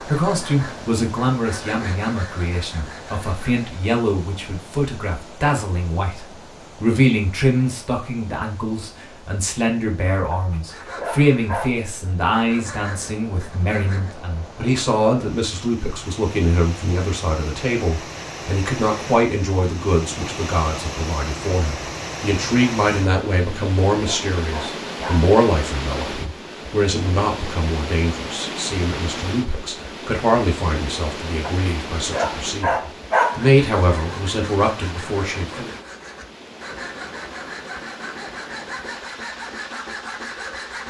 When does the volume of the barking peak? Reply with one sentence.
The loudest moment of the barking is at 33 seconds.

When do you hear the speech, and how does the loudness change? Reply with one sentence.
The speech can be heard from 0.0 to 35.7 s, at a steady volume.